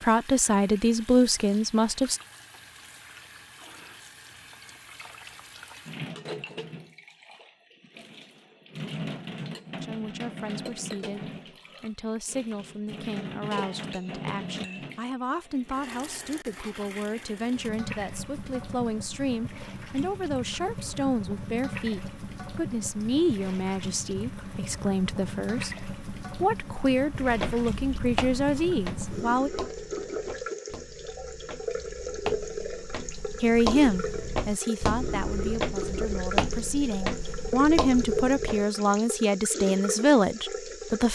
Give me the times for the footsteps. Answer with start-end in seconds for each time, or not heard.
27.2-38.6.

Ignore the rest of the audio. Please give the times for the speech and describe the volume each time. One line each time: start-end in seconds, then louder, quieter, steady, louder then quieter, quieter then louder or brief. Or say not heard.
0.0-2.2 brief
9.8-29.5 louder
33.4-41.1 quieter then louder.